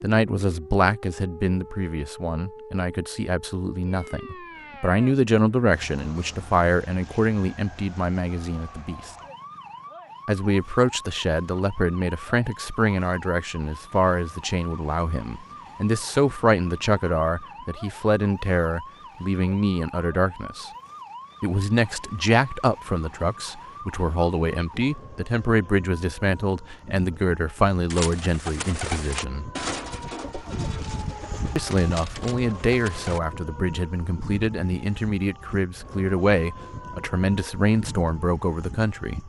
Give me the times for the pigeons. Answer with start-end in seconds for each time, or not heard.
27.9-33.2.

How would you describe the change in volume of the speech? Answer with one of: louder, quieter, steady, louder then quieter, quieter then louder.
steady.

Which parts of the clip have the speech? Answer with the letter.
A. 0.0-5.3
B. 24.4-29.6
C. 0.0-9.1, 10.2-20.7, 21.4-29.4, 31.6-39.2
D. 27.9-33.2
C.